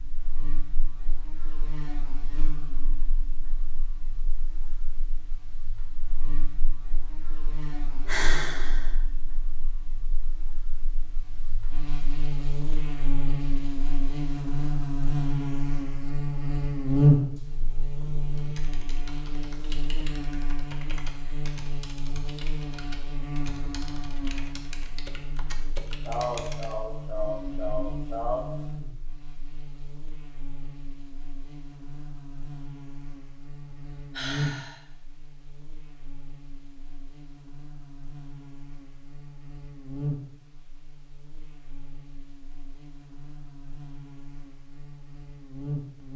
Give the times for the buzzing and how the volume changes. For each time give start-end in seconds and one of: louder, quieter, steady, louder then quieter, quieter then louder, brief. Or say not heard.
0.0-46.1 louder then quieter.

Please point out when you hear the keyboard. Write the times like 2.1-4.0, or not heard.
18.3-26.8.